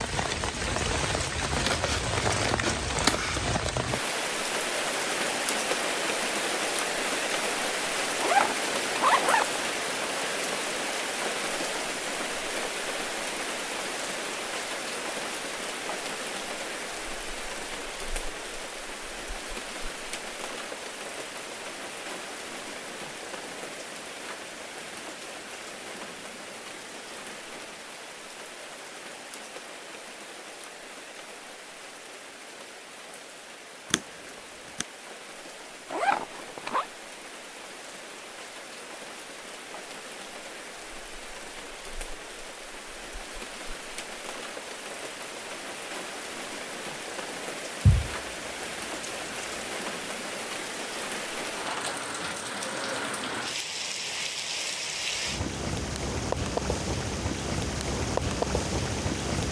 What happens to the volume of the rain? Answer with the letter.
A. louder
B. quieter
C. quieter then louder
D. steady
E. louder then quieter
C.